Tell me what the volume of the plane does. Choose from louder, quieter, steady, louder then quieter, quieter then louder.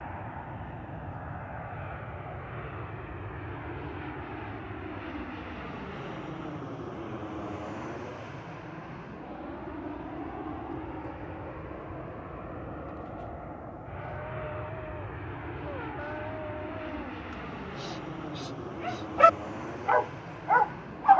steady.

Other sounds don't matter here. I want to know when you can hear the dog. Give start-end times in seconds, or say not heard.
13.9-21.1.